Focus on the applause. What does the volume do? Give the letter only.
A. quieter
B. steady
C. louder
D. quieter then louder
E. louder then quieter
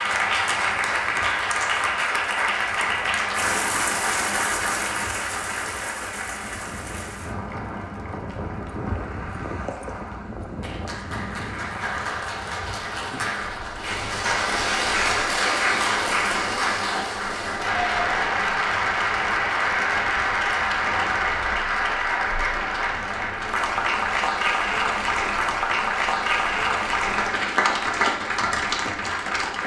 D.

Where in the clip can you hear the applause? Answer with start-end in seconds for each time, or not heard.
0.0-29.6.